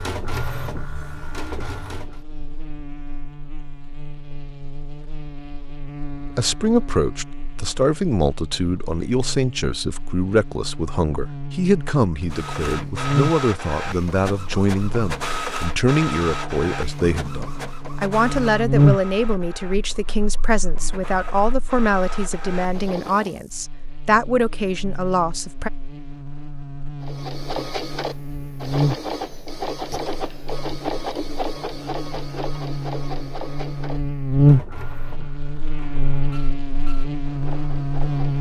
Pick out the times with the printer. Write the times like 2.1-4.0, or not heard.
0.0-2.2, 12.2-23.4, 27.0-38.3.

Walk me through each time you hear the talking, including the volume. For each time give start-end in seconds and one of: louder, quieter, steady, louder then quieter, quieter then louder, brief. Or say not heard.
6.2-25.7 steady.